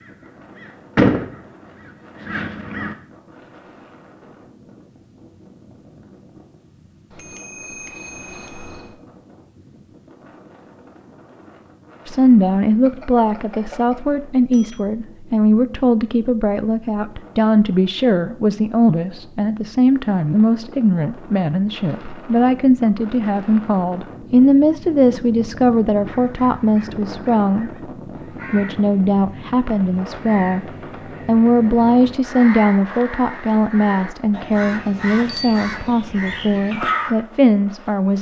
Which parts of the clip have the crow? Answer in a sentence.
The crow can be heard from 0.1 to 3.0 s and from 25.9 to 37.1 s.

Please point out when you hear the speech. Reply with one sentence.
The speech can be heard from 12.1 to 27.9 s, from 28.5 to 30.6 s and from 31.2 to 38.1 s.